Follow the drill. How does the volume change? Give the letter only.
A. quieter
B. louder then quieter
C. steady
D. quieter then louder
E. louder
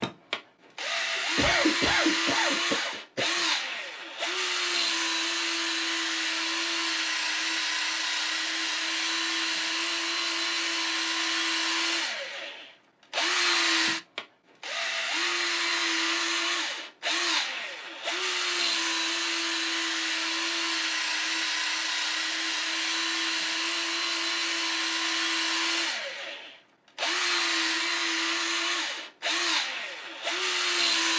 C.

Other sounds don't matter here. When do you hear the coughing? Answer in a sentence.
The coughing can be heard from 1.1 to 3.4 s.